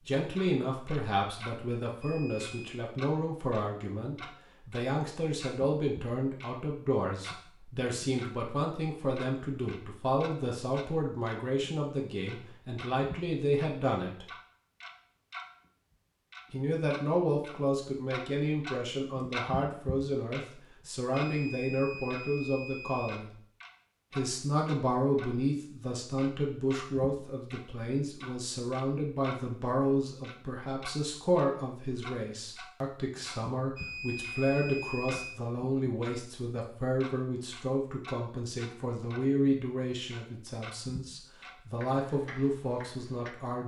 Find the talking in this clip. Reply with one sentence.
The talking can be heard from 0.0 to 14.2 s, from 16.5 to 23.4 s and from 24.1 to 43.6 s.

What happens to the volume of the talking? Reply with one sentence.
The loudness of the talking stays about the same.